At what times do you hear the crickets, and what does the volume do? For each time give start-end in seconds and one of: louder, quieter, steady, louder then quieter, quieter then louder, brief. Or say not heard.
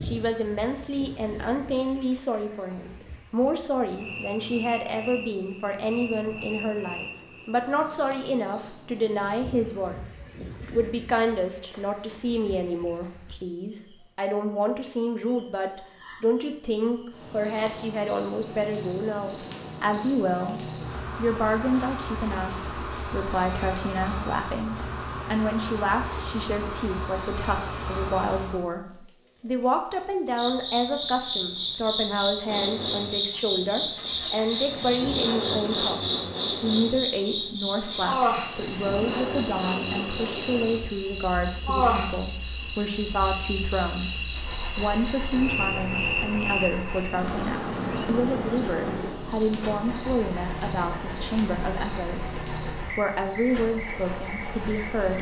0.0-55.1 louder.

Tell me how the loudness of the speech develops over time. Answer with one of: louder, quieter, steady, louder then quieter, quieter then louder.
steady.